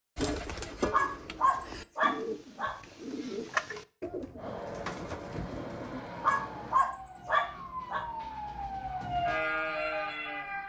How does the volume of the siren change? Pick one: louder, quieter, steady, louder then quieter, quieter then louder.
louder.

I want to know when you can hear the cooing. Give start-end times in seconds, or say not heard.
0.1-6.0.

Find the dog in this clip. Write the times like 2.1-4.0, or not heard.
0.9-2.8, 6.2-8.1.